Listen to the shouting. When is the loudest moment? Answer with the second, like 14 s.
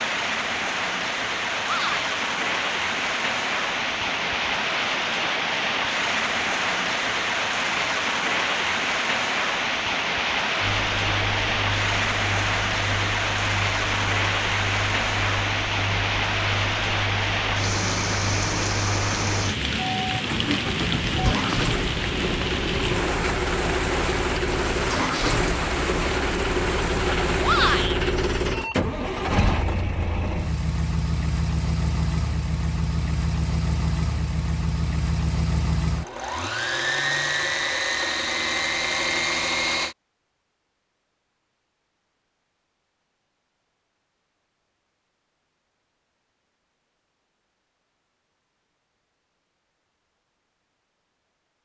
28 s.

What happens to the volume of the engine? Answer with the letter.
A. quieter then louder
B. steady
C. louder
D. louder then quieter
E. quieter
C.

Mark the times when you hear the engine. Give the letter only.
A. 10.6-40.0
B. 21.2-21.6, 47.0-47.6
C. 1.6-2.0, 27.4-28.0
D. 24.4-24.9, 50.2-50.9
A.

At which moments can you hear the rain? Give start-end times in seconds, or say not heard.
0.0-27.9.